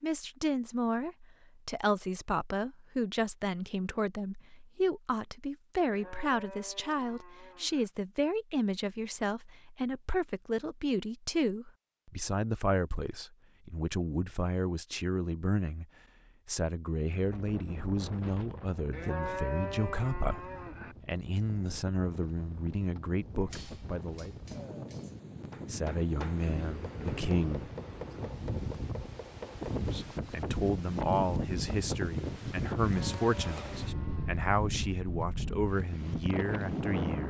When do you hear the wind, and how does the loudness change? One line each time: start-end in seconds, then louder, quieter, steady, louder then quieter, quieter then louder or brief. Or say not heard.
17.1-37.2 louder.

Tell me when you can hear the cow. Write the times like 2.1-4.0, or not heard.
5.8-7.9, 18.9-20.9, 32.9-34.4.